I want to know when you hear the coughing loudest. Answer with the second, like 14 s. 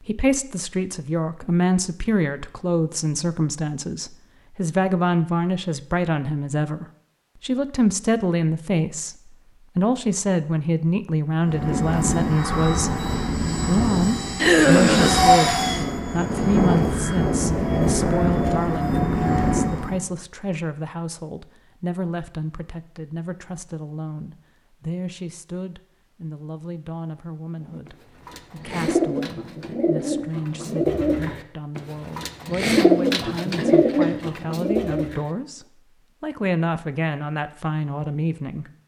15 s.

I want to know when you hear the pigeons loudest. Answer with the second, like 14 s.
33 s.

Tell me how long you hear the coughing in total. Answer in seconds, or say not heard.
2 s.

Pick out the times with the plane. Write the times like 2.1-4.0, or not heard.
11.4-20.0.